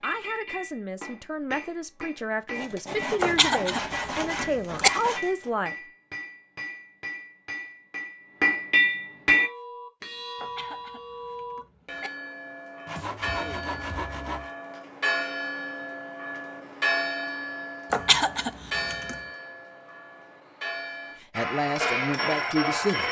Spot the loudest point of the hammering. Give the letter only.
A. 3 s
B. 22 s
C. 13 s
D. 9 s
D.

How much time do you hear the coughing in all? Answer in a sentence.
You can hear the coughing for 5 seconds altogether.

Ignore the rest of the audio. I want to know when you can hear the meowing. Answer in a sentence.
You can't hear the meowing here.